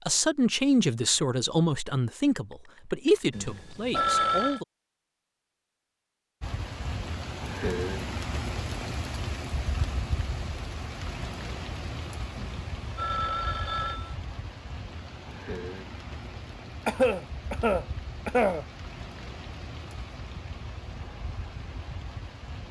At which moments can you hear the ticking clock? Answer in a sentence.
You can't hear the ticking clock here.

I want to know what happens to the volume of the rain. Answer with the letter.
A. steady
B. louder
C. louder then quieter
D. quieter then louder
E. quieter
E.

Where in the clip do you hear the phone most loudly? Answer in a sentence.
The loudest moment of the phone is at 4 seconds.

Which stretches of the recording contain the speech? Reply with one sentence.
You can hear the speech from 0.1 to 4.7 s.